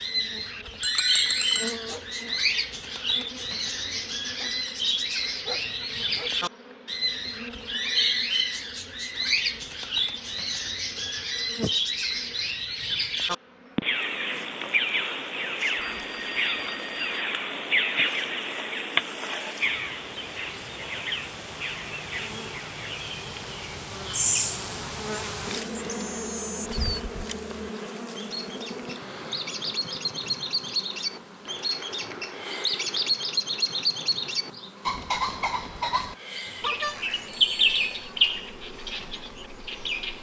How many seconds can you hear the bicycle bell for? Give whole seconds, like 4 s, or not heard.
4 s.